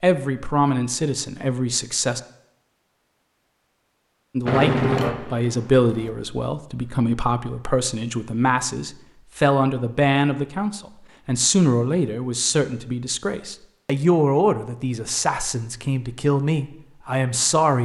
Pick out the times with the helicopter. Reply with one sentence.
You can hear the helicopter from 4.5 to 6.2 s.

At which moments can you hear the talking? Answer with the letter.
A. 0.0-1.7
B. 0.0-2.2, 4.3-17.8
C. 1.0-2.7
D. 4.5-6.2
B.